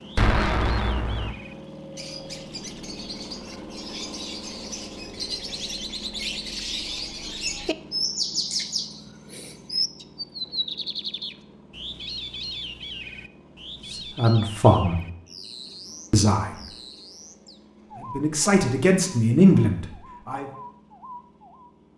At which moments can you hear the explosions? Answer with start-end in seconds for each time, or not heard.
0.1-1.4.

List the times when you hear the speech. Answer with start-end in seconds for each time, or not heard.
13.9-15.0, 16.1-16.6, 18.0-20.4.